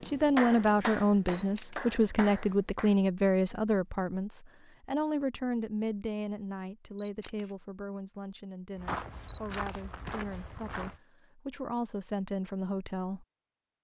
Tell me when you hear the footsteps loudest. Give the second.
9 s.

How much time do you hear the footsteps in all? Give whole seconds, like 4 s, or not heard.
2 s.